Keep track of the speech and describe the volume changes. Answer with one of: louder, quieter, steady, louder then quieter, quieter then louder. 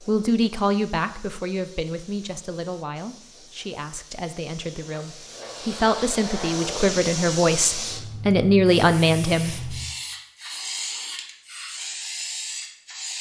quieter then louder.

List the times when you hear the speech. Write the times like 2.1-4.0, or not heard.
0.1-9.8.